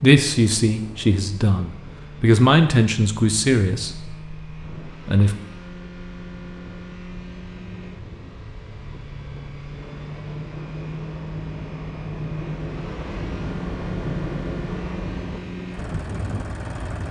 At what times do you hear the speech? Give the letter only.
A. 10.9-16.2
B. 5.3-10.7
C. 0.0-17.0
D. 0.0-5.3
D.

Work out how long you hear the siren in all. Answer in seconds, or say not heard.
not heard.